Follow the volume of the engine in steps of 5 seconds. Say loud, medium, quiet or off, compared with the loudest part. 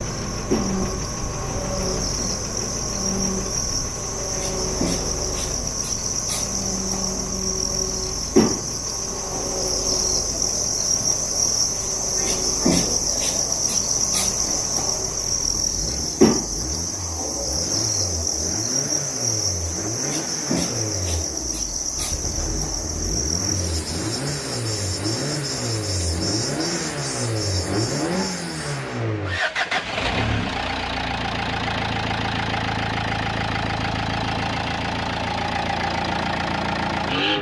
medium, medium, quiet, medium, medium, loud, loud, loud.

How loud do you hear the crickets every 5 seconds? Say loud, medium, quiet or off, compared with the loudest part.
medium, loud, loud, loud, medium, medium, off, off.